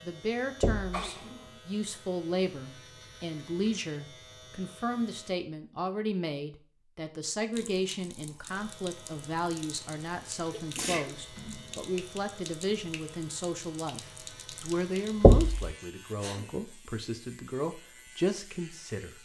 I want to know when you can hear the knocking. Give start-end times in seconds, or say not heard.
0.6-1.0, 15.2-15.7.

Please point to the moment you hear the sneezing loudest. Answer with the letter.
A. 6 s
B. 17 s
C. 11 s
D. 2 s
C.